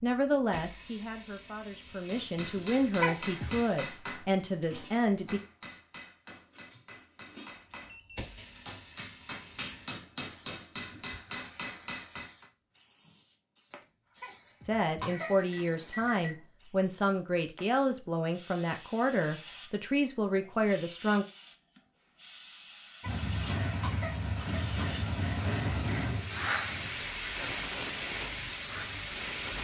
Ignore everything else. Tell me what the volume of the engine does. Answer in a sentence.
The volume of the engine goes down.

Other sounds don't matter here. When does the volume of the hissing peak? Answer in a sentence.
The loudest moment of the hissing is at 27 seconds.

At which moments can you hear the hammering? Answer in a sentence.
You can hear the hammering from 2.0 to 12.5 s.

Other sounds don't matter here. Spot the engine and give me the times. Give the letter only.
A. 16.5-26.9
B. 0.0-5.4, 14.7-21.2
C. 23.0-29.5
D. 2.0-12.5
C.